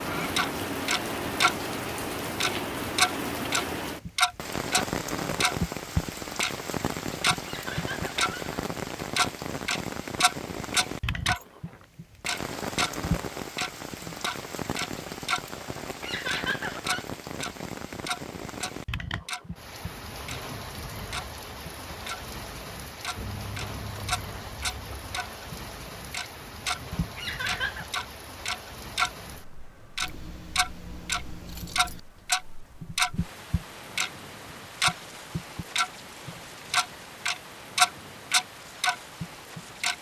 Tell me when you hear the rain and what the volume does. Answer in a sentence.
The rain can be heard from 0.0 to 39.9 s, getting quieter.